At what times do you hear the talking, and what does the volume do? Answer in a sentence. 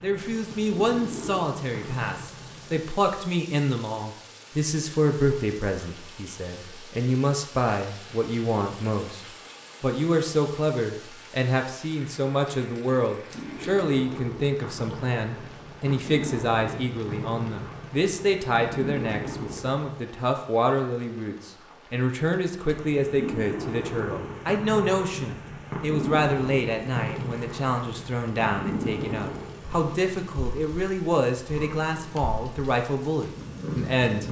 You can hear the talking from 0.0 to 34.2 s, at a steady volume.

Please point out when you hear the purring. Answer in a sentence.
You can hear the purring from 0.0 to 3.0 s, from 13.2 to 19.9 s and from 22.7 to 34.2 s.